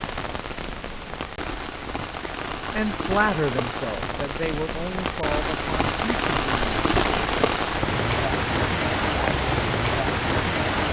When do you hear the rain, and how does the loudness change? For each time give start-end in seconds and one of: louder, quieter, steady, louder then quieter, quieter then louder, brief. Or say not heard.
0.0-10.8 louder.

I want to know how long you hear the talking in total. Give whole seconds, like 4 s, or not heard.
4 s.